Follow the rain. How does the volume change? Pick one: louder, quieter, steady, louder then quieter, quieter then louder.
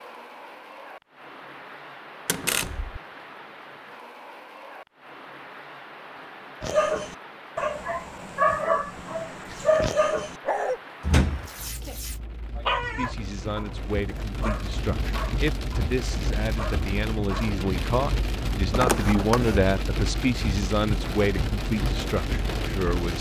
louder.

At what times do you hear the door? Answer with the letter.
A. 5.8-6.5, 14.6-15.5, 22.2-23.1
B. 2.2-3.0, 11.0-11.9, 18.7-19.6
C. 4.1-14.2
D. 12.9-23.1
B.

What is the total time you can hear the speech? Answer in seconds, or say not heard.
10 s.